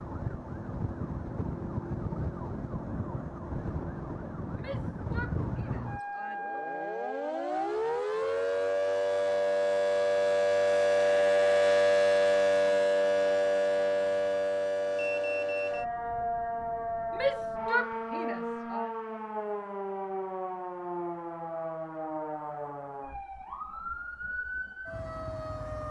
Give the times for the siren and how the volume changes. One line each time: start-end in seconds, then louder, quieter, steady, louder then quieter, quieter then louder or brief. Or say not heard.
0.0-25.8 louder then quieter.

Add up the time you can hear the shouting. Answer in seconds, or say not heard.
4 s.